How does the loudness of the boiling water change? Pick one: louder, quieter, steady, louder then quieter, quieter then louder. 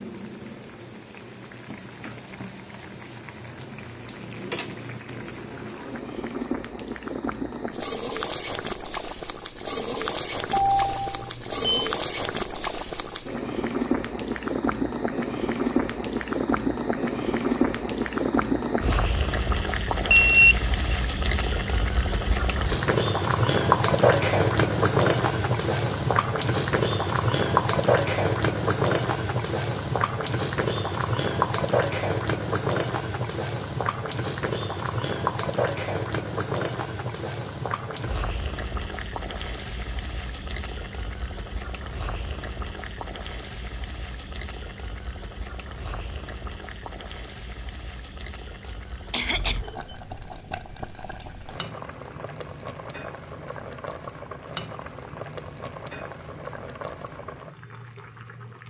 louder then quieter.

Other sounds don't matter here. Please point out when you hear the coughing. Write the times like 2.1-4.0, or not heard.
48.6-49.6.